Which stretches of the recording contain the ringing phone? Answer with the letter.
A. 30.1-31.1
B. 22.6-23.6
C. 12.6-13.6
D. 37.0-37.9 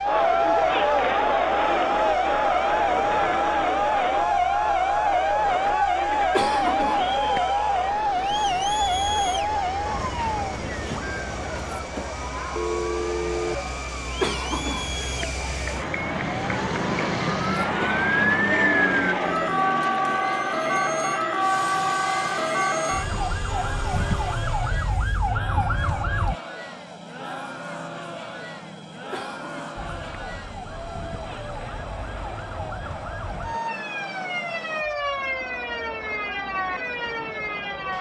C.